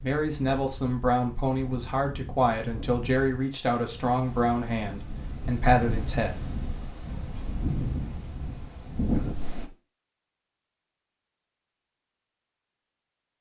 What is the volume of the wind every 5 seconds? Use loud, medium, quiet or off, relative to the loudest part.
medium, loud, off.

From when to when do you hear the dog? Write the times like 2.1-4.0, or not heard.
not heard.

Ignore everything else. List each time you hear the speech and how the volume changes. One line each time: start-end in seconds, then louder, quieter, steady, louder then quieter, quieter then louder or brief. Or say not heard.
0.0-6.5 steady.